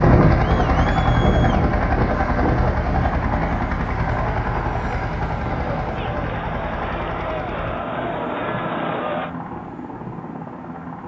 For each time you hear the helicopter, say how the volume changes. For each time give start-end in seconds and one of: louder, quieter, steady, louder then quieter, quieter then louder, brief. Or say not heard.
0.0-11.0 quieter.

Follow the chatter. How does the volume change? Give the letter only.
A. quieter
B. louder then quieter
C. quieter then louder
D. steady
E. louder
E.